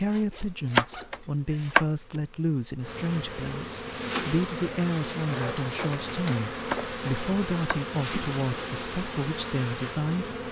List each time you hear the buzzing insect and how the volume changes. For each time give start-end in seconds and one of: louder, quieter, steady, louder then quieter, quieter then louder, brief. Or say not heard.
0.1-10.4 louder.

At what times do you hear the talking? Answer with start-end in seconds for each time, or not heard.
0.0-10.3.